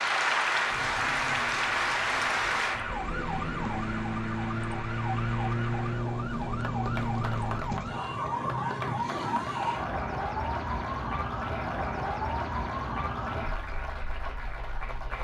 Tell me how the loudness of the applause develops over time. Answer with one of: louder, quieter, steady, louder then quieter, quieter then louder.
quieter.